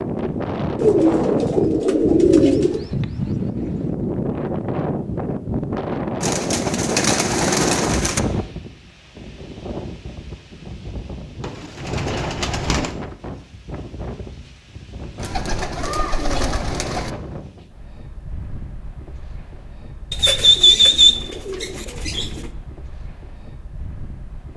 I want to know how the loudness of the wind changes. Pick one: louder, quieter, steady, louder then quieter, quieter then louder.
quieter.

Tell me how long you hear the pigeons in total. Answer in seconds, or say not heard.
10 s.